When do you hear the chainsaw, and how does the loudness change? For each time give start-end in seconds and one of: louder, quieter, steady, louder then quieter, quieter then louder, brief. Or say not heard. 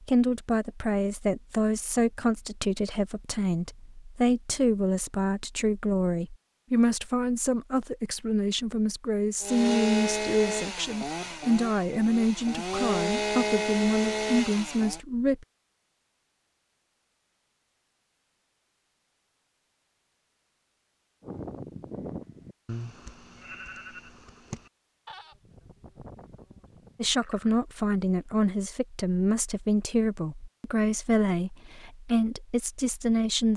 9.4-15.0 quieter then louder.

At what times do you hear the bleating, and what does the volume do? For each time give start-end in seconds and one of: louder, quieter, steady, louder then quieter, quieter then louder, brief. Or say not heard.
21.2-27.6 quieter.